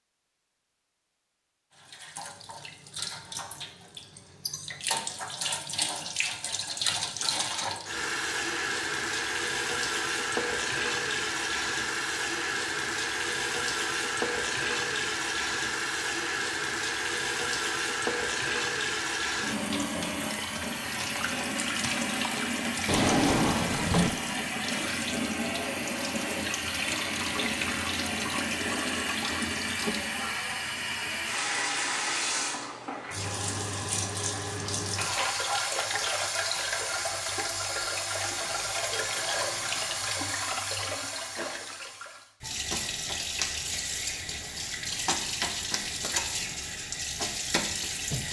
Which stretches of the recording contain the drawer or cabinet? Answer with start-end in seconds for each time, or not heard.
22.9-24.2.